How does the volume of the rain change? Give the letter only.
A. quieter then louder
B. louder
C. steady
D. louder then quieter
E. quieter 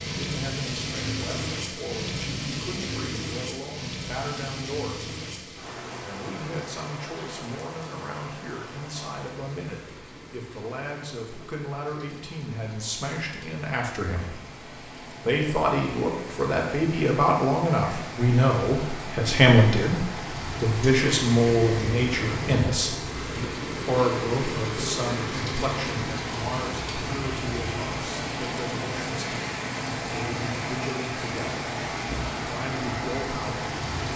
A.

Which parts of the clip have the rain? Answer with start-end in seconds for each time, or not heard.
0.0-34.1.